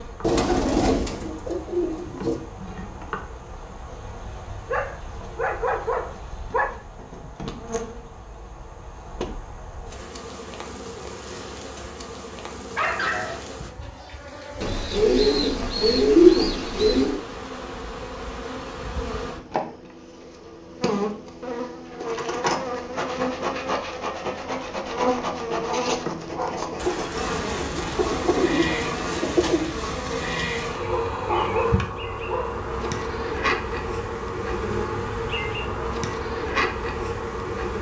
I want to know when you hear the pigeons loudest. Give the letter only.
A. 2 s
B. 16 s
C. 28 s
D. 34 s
B.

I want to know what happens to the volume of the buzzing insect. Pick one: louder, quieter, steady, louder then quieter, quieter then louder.
louder.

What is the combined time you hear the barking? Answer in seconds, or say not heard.
7 s.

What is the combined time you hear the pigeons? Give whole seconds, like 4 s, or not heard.
8 s.